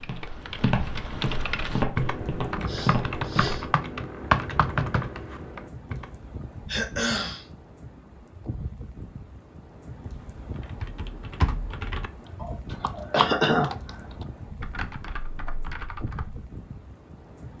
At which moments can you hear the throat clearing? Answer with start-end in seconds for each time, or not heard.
2.5-3.6, 6.7-7.5, 12.4-13.7.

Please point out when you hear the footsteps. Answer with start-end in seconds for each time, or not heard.
0.0-3.6.